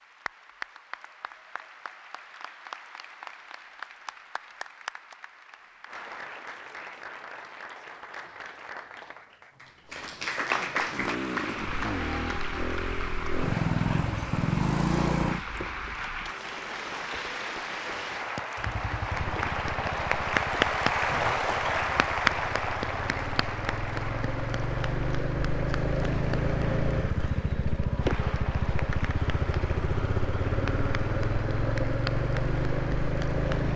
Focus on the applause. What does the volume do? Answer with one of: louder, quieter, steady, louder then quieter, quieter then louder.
louder then quieter.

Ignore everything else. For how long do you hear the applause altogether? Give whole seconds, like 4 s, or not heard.
34 s.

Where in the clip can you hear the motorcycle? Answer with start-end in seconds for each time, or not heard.
10.9-16.4, 18.6-33.7.